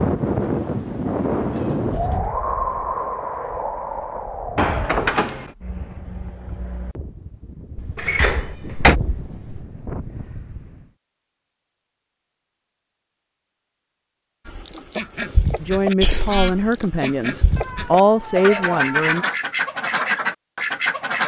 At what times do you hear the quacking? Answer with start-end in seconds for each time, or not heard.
14.4-21.2.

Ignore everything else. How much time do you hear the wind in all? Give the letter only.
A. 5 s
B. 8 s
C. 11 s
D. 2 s
C.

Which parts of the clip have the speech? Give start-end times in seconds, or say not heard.
15.6-19.2.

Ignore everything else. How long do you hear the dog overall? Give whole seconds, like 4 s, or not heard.
not heard.